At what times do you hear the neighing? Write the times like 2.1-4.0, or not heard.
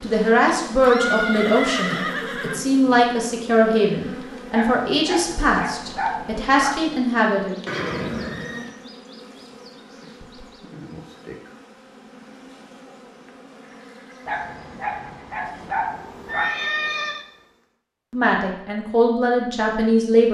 0.8-3.0, 7.7-8.8, 16.2-17.2.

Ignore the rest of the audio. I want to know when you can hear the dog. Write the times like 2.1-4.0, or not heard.
4.5-6.8, 14.2-16.6.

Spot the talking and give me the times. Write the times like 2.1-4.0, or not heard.
0.0-7.5, 18.1-20.3.